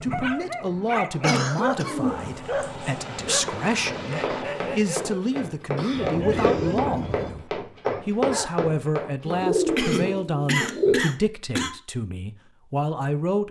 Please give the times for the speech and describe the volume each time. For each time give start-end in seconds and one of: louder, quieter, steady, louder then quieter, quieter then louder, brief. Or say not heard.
0.0-13.4 steady.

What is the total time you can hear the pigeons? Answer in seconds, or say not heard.
4 s.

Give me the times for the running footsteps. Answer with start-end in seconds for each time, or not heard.
3.5-10.2.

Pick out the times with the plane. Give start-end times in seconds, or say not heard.
0.0-5.0.